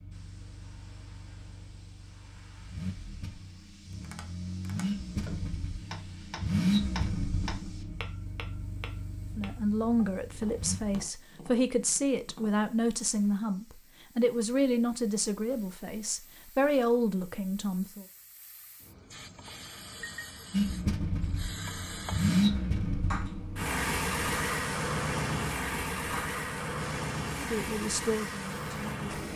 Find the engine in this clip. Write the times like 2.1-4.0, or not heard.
0.0-11.1, 20.5-29.3.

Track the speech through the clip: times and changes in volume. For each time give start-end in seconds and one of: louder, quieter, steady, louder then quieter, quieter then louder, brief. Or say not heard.
9.3-18.1 steady
27.4-29.1 brief.